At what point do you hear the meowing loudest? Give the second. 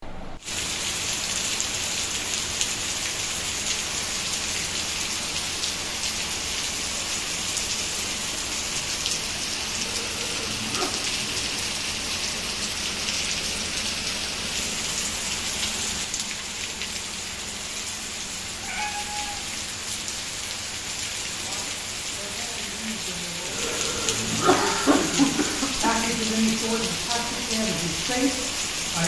19 s.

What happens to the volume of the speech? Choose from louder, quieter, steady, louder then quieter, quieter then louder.
louder.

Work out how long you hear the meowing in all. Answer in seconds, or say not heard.
2 s.